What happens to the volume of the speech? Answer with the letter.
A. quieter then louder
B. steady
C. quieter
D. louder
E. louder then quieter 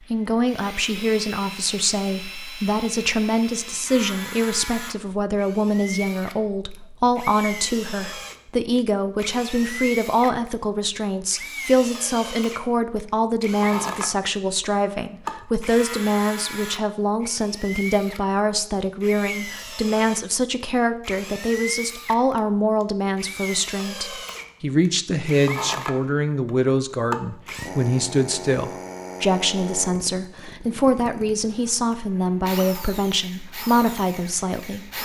B.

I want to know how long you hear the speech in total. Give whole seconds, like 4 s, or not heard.
35 s.